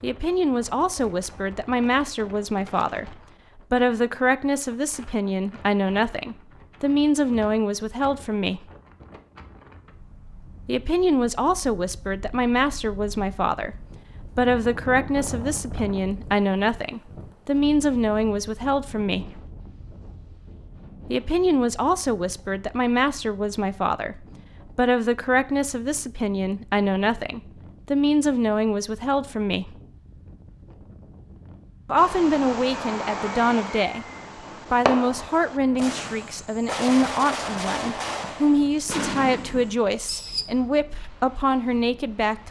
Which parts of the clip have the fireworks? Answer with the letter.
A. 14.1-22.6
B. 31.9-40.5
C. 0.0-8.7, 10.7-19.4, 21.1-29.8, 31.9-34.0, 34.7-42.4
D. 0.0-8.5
B.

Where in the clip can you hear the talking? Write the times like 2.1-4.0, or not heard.
0.0-8.7, 10.7-19.4, 21.1-29.8, 31.9-34.0, 34.7-42.4.